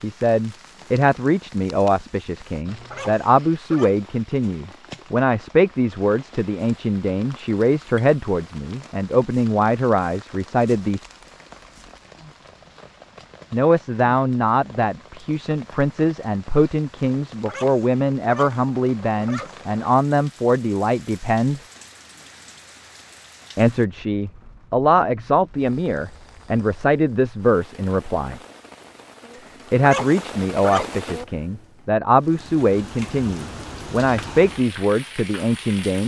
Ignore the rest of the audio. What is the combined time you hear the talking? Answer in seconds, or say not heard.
30 s.